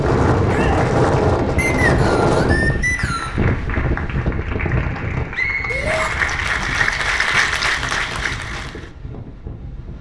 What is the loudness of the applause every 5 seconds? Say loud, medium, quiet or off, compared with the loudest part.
medium, loud.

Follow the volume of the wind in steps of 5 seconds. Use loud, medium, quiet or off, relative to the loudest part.
loud, quiet.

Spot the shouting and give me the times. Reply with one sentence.
You can hear the shouting from 0.5 to 0.9 s and from 5.7 to 6.1 s.